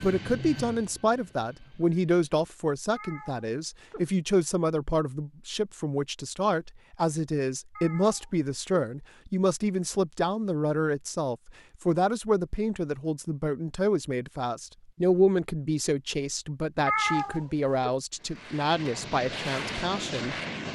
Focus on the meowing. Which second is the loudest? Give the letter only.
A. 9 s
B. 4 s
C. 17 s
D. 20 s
C.